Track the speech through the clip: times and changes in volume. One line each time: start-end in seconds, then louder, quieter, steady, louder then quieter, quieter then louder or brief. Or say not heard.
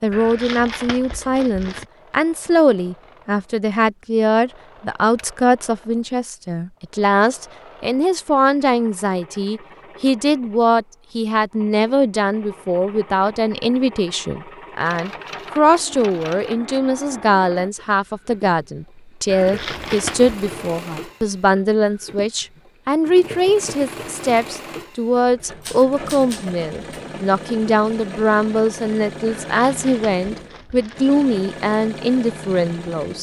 0.0-33.1 steady.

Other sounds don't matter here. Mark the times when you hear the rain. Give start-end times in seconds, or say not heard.
not heard.